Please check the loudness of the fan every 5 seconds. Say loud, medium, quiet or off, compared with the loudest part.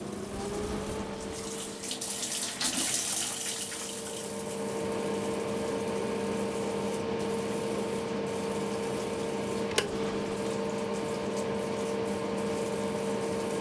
medium, loud, loud.